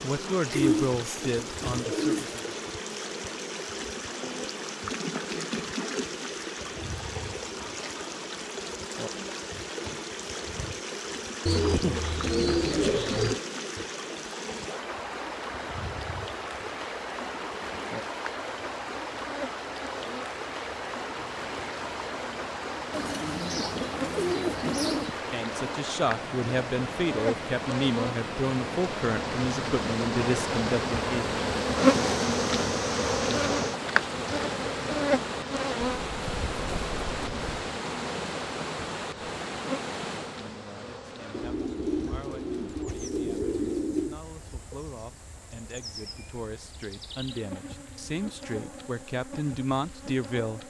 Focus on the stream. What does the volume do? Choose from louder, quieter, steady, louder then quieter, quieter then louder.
quieter.